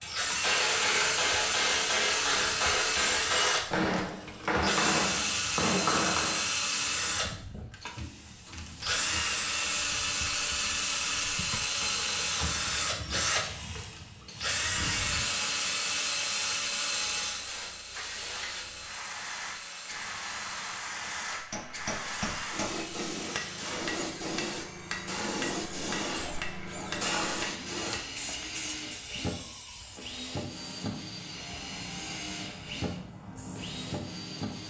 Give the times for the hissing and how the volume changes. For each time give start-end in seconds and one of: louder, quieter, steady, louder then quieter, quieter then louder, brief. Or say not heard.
0.0-34.6 louder then quieter.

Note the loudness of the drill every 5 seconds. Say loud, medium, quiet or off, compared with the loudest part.
loud, loud, loud, loud, quiet, medium, medium.